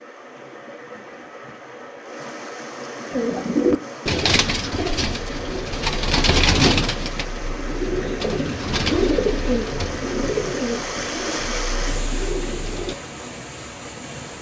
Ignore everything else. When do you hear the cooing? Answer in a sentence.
You can hear the cooing from 3.1 to 12.9 s.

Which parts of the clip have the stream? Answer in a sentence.
You can hear the stream from 0.0 to 14.3 s.